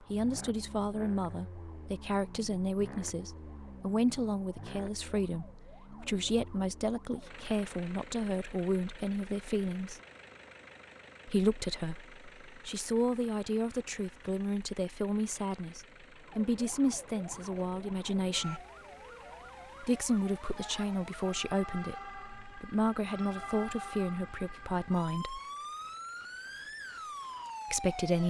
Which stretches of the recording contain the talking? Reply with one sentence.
The talking can be heard from 0.0 to 10.0 s, from 11.2 to 18.6 s, from 19.8 to 25.4 s and from 27.7 to 28.2 s.